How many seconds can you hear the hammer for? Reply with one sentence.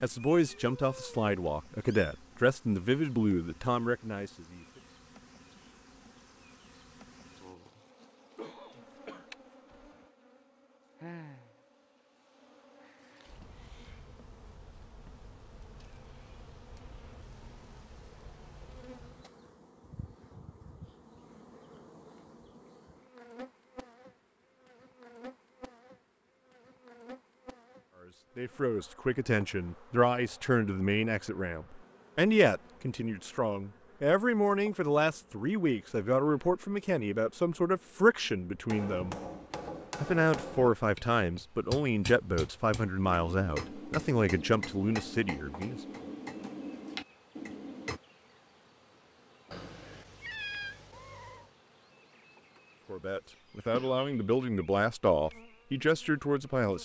You can hear the hammer for 9 seconds altogether.